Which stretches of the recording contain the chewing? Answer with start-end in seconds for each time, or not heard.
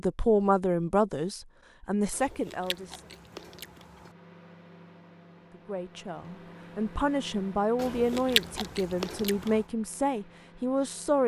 2.1-4.2, 7.8-9.7.